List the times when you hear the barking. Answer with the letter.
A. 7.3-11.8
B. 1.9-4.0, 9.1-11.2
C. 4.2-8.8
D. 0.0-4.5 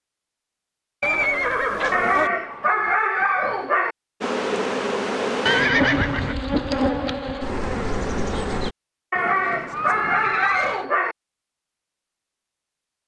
B.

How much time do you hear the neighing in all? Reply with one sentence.
You can hear the neighing for 4 seconds altogether.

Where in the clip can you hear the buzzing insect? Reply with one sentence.
The buzzing insect can be heard from 4.2 to 8.8 s.